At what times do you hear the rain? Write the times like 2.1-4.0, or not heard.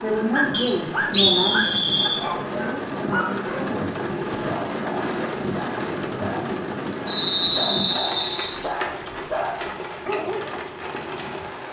0.0-11.6.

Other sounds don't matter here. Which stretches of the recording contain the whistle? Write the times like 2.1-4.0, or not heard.
0.5-2.2, 7.0-8.6.